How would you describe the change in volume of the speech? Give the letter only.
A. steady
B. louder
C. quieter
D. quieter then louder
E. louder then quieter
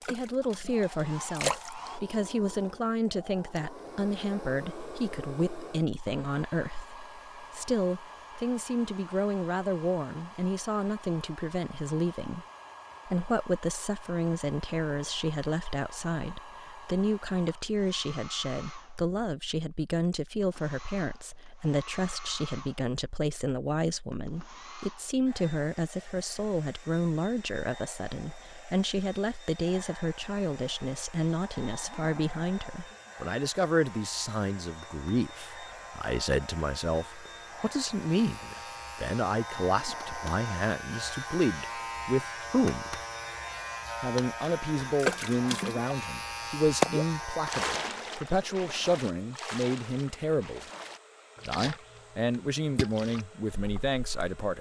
A.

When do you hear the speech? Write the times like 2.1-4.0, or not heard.
0.1-12.4, 13.1-43.0, 44.0-50.6, 51.5-54.5.